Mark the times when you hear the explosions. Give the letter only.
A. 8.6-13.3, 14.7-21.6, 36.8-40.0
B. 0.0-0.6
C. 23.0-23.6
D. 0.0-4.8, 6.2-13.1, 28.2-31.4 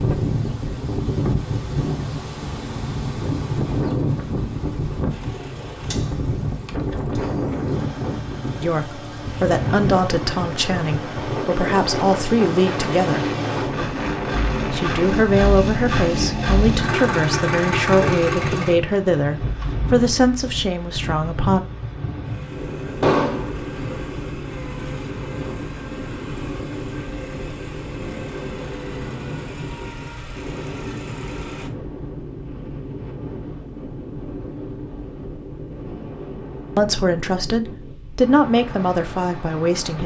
C.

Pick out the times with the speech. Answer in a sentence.
You can hear the speech from 8.6 to 13.3 s, from 14.7 to 21.6 s and from 36.8 to 40.0 s.